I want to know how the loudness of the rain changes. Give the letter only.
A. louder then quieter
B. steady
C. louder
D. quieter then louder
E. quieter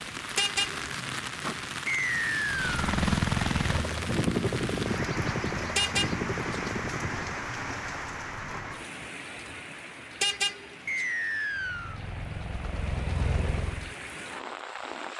E.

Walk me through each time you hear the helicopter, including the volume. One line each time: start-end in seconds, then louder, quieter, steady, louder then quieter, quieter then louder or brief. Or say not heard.
2.5-7.5 quieter
11.5-13.9 brief.